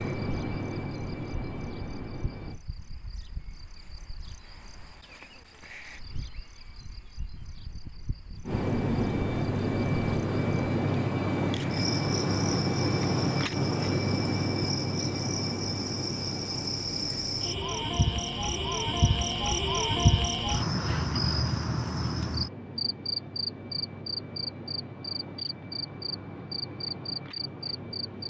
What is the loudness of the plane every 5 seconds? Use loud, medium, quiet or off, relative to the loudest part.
medium, loud, loud, medium, quiet, quiet.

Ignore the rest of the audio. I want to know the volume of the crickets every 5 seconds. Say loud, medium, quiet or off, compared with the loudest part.
quiet, quiet, medium, loud, loud, medium.